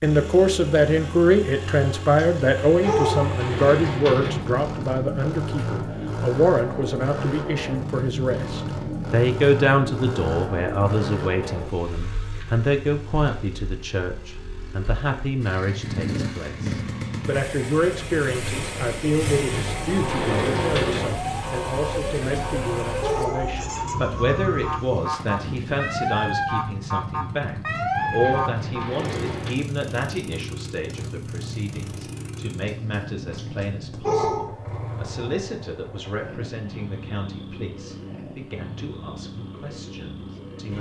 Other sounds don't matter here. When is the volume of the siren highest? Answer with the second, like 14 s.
28 s.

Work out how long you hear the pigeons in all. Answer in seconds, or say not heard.
5 s.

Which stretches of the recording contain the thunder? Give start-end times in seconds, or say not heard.
not heard.